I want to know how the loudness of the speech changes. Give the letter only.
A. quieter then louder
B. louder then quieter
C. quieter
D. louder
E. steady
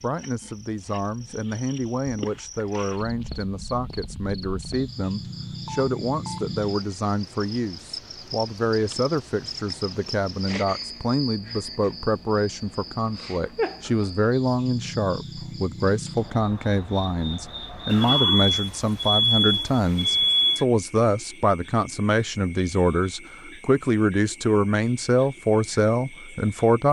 D.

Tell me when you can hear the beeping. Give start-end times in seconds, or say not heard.
5.7-6.5, 17.9-20.6.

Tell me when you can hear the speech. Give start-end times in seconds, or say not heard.
0.0-26.8.